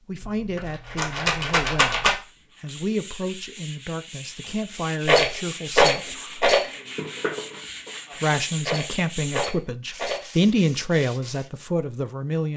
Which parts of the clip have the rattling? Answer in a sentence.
The rattling can be heard from 0.2 to 2.1 s, from 5.0 to 6.7 s and from 8.6 to 10.2 s.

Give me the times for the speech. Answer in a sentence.
You can hear the speech from 0.1 to 6.2 s and from 8.2 to 12.5 s.